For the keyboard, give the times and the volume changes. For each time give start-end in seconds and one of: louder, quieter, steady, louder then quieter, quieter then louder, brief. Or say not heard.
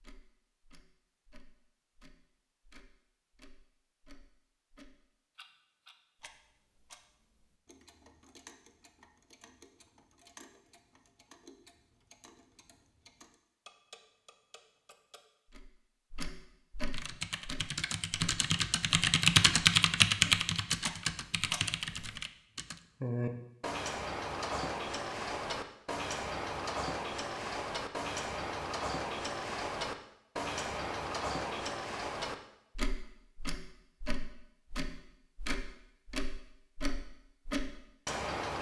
16.9-22.8 louder then quieter.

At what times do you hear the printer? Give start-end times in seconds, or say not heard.
not heard.